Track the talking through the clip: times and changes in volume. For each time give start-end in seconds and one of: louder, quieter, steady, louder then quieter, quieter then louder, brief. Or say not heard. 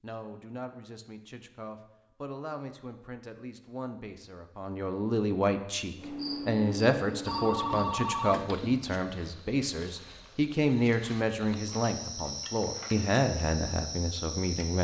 0.0-14.7 louder.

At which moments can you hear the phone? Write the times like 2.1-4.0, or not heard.
7.2-8.8.